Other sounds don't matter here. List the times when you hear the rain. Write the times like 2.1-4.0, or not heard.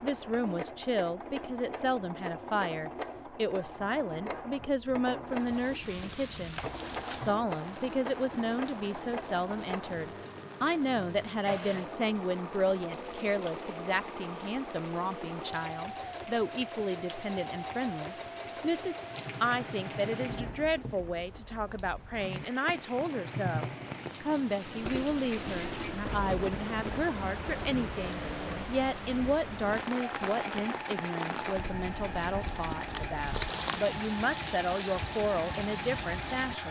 5.3-36.6.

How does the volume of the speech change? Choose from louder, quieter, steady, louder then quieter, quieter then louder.
steady.